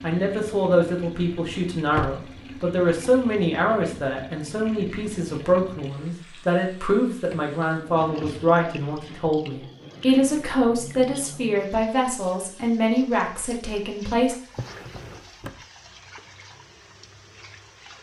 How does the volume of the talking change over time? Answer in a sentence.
The loudness of the talking stays about the same.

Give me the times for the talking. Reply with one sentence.
You can hear the talking from 0.0 to 14.3 s.